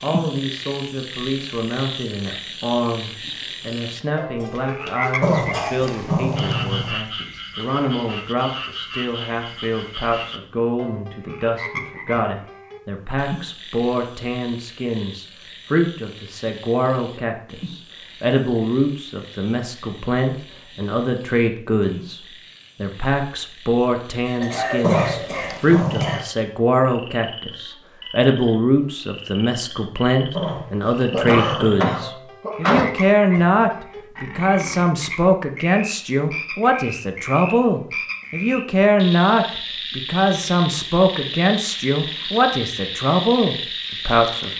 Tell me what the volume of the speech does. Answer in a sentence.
The volume of the speech goes up.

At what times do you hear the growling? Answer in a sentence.
You can hear the growling from 5.2 to 7.0 s, from 24.8 to 26.2 s and from 30.4 to 32.0 s.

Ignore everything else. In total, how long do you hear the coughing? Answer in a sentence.
You can hear the coughing for 6 seconds altogether.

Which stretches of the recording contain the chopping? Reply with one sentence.
The chopping can't be heard in this clip.